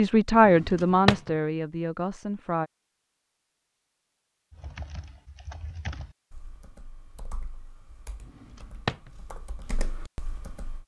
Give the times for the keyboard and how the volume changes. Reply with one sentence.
The keyboard can be heard from 4.5 to 10.8 s, getting quieter then louder.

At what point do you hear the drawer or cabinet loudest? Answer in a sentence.
The loudest moment of the drawer or cabinet is at 1 second.